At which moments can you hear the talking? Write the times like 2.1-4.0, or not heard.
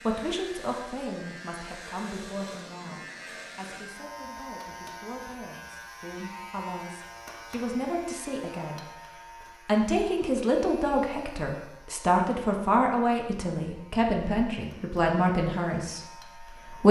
0.0-16.8.